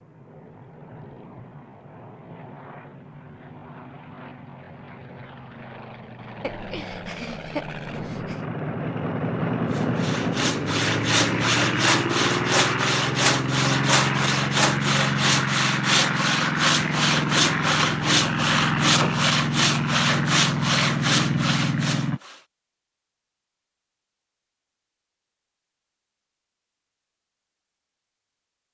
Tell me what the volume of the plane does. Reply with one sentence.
The volume of the plane goes up.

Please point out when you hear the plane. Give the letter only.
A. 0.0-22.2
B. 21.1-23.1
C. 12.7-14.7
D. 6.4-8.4
A.